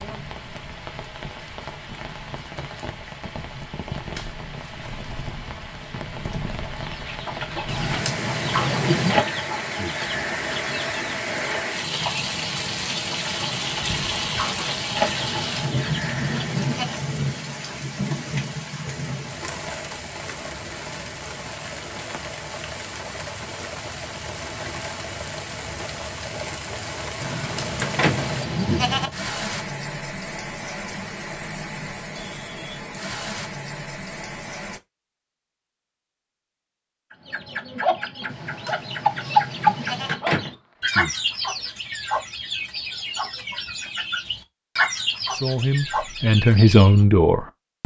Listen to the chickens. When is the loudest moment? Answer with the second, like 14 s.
40 s.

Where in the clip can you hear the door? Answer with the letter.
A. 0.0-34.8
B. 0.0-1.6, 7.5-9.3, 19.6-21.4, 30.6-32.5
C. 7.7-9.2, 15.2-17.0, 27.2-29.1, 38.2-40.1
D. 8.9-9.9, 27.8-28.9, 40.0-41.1
D.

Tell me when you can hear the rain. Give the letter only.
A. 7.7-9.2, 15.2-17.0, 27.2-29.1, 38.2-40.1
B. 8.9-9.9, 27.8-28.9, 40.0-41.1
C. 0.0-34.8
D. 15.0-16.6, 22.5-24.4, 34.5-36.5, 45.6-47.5
C.